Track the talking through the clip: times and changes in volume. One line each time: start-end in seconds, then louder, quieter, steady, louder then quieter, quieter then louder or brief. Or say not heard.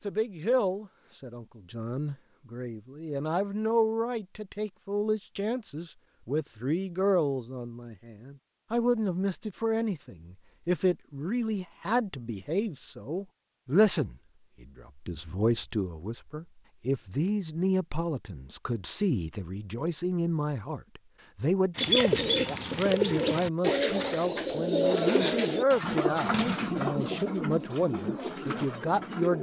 0.0-29.3 steady.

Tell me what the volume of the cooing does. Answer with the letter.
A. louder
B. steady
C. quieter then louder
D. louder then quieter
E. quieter
E.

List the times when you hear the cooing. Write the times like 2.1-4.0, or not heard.
21.8-29.3.